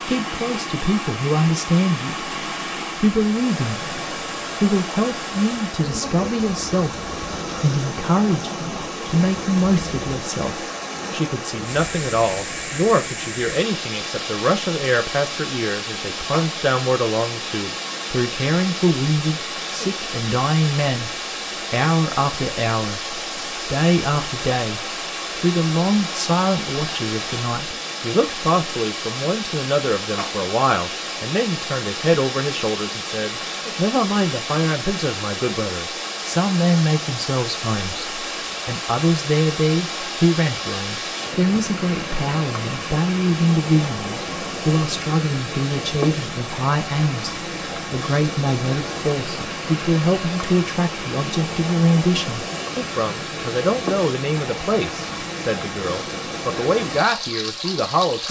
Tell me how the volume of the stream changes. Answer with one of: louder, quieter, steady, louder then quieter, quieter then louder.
steady.